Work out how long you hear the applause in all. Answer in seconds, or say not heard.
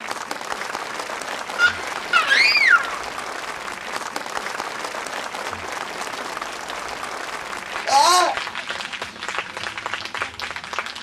11 s.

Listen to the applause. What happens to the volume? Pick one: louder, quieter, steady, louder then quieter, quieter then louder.
steady.